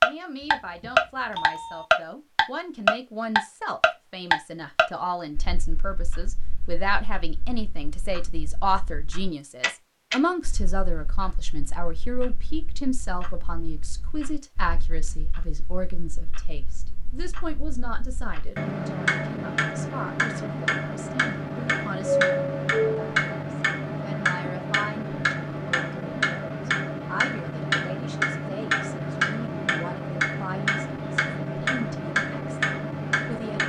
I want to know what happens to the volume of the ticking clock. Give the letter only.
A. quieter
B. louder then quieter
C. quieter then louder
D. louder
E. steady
C.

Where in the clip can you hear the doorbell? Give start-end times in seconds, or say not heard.
0.4-1.9, 22.1-23.1.